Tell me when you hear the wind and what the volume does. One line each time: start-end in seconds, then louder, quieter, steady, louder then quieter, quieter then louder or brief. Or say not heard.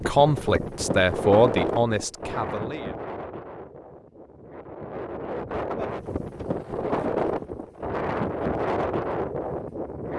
0.0-10.1 quieter then louder.